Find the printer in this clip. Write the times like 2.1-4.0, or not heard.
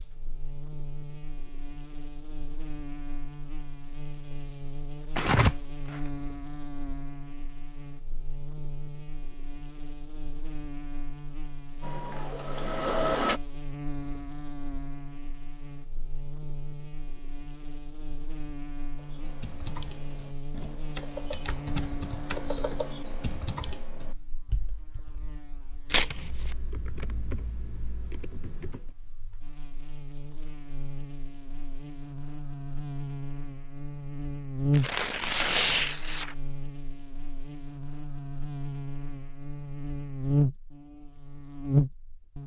11.8-13.4.